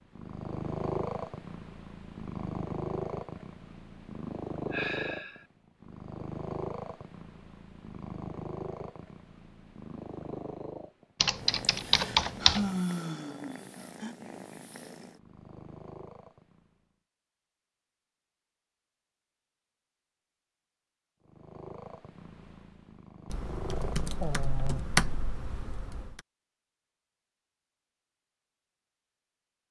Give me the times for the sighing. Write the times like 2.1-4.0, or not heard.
4.7-5.5, 11.7-14.2, 24.2-24.9.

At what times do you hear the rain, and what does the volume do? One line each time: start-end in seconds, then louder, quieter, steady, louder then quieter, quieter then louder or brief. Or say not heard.
not heard.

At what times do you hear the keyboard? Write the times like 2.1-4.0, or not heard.
11.2-12.8, 23.3-26.2.